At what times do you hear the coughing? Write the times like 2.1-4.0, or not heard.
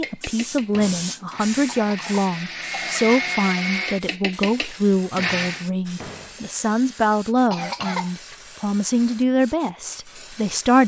1.7-3.4, 7.5-8.1.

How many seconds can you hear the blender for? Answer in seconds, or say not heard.
6 s.